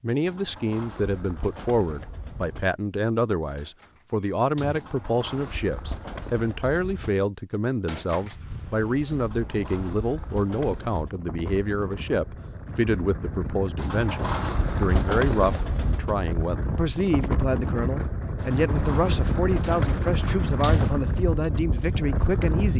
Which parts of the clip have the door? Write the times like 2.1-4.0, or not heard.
3.5-4.8, 7.8-8.4, 19.6-21.1.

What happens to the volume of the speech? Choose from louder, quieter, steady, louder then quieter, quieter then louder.
steady.